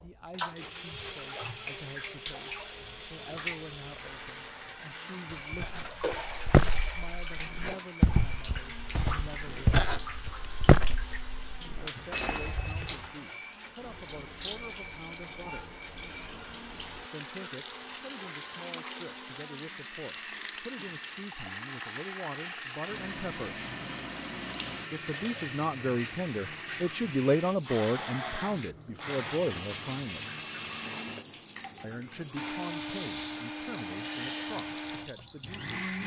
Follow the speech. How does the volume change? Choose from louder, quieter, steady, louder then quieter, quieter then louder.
louder then quieter.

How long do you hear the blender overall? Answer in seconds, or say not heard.
36 s.